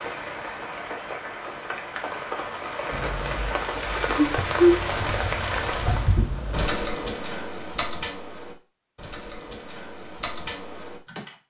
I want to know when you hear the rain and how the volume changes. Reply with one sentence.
The rain can be heard from 0.0 to 6.2 s, getting louder.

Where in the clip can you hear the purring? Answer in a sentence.
The purring can be heard from 2.9 to 6.7 s.